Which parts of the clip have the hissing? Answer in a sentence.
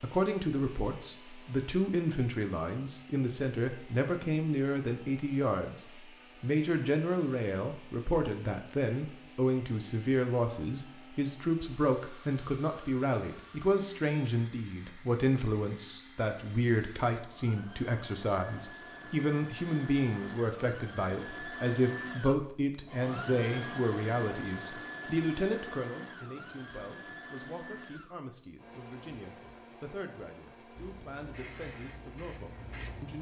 The hissing can be heard from 30.8 to 33.1 s.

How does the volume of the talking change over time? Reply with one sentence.
The loudness of the talking goes down.